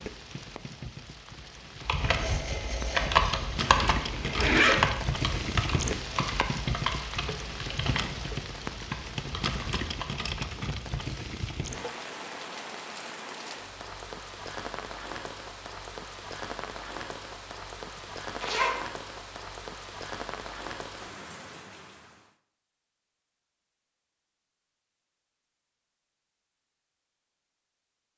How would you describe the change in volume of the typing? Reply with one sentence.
The volume of the typing goes down.